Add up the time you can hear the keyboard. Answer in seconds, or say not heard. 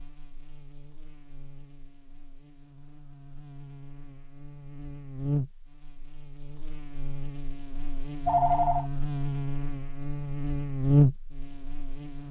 not heard.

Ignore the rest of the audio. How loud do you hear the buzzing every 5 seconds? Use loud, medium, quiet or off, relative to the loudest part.
quiet, medium, loud.